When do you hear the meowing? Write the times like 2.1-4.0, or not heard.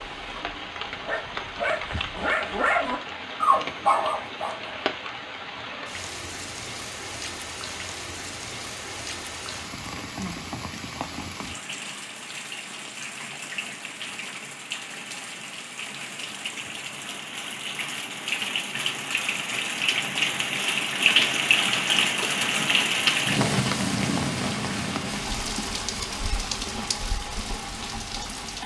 not heard.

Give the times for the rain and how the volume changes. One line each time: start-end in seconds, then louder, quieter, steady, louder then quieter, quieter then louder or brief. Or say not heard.
0.0-28.6 louder.